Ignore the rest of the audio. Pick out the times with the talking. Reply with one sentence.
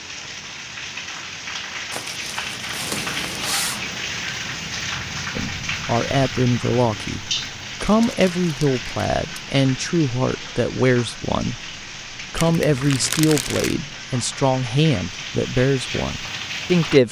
The talking can be heard from 5.3 to 17.0 s.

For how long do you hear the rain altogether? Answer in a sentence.
You can hear the rain for 17 seconds altogether.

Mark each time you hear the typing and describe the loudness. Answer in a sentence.
You can't hear the typing here.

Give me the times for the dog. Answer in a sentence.
You can't hear the dog here.